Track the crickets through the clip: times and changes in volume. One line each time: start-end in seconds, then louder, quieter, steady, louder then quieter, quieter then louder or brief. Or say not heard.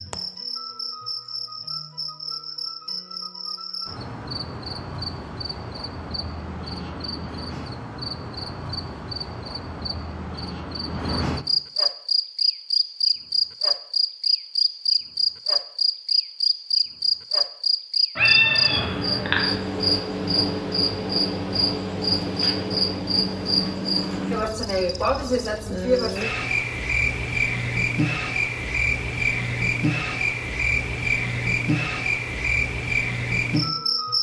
0.0-34.1 louder.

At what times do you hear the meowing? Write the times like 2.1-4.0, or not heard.
18.1-19.4.